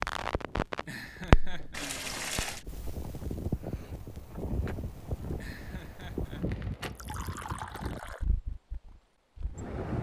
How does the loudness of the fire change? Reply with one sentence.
The loudness of the fire goes down, then up.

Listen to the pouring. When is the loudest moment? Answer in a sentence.
The loudest moment of the pouring is at 2 seconds.